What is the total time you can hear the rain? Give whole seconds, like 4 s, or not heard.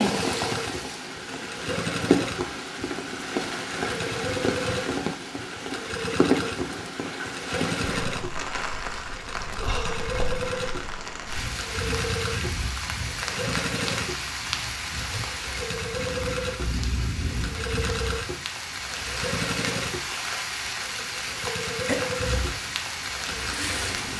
24 s.